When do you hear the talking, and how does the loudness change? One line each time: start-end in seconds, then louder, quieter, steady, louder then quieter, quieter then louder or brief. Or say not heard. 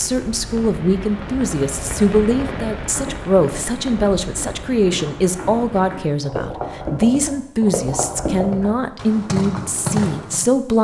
0.0-10.7 steady.